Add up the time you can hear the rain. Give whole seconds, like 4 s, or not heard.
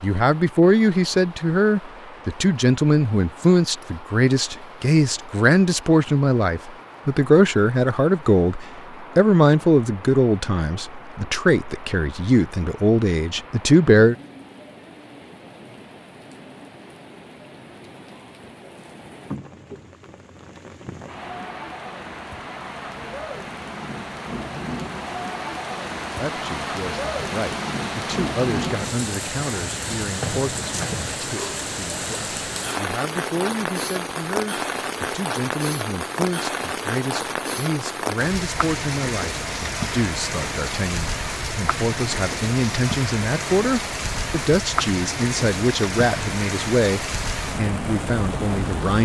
49 s.